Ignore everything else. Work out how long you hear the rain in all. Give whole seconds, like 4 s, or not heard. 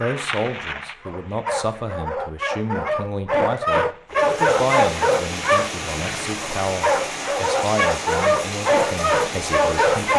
6 s.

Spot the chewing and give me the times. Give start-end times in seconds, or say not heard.
not heard.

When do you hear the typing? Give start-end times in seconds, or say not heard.
not heard.